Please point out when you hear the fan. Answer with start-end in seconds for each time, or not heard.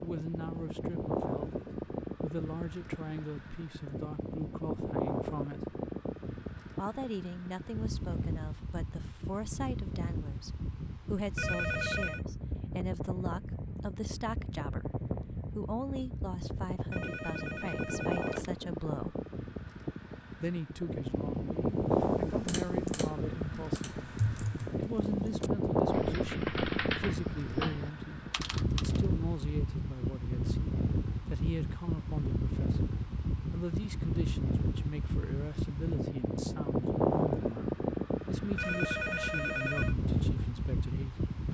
0.0-41.4.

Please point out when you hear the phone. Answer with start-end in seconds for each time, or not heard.
11.3-12.2, 16.9-18.6, 38.5-40.0.